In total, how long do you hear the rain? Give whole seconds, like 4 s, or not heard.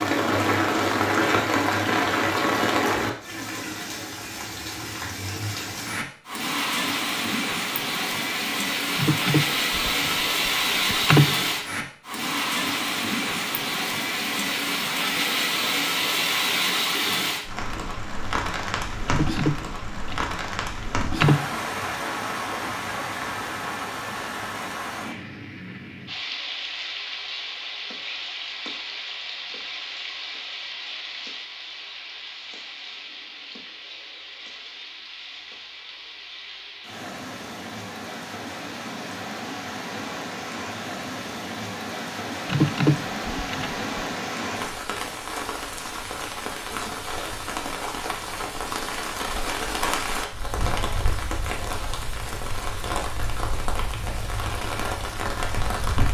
56 s.